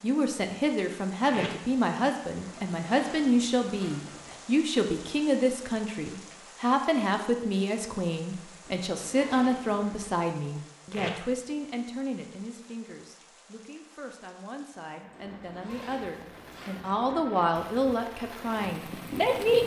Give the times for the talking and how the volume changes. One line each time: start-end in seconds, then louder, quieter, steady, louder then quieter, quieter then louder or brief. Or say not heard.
0.0-19.6 quieter then louder.